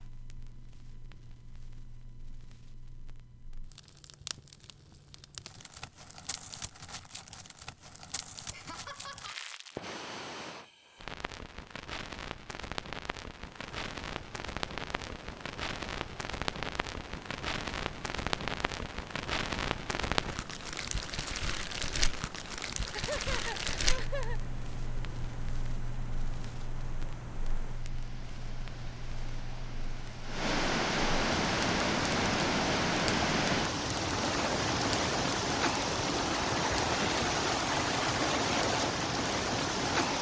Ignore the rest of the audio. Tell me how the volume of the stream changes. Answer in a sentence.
The volume of the stream goes up.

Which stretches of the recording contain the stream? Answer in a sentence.
The stream can be heard from 13.3 to 40.1 s.